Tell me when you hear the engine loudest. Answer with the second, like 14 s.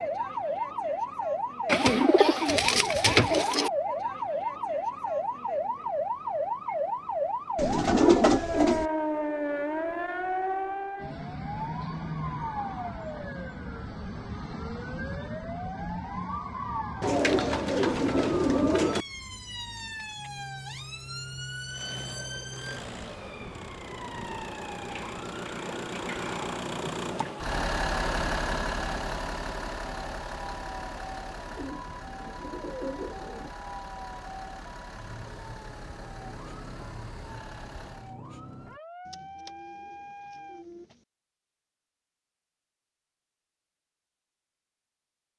28 s.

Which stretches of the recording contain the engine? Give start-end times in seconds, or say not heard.
21.6-38.1.